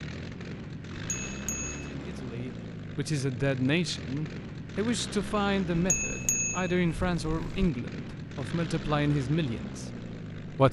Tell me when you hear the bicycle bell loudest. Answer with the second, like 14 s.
6 s.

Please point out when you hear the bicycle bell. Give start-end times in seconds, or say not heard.
1.2-1.9, 5.8-7.7.